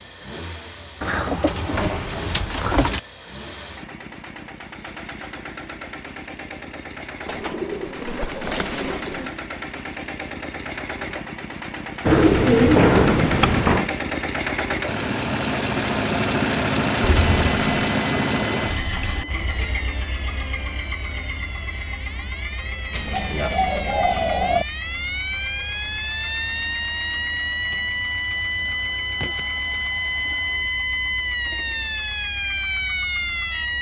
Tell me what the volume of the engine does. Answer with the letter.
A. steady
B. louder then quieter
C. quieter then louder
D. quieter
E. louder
B.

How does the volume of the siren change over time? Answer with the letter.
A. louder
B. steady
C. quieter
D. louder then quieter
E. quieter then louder
A.